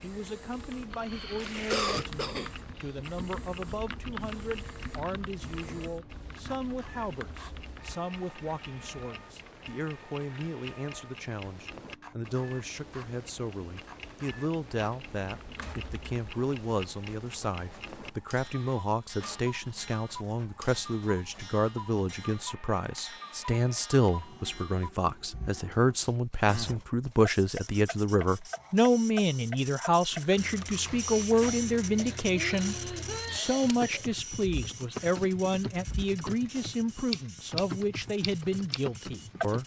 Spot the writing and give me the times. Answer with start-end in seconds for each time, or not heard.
not heard.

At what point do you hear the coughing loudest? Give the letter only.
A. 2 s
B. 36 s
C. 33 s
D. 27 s
A.